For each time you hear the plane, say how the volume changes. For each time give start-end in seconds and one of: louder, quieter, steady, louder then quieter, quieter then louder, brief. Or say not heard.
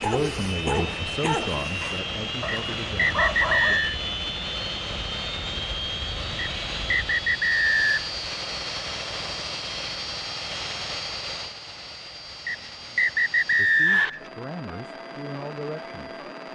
0.0-16.5 quieter.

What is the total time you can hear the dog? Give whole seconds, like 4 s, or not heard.
4 s.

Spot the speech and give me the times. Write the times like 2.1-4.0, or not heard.
0.0-3.8, 13.6-16.2.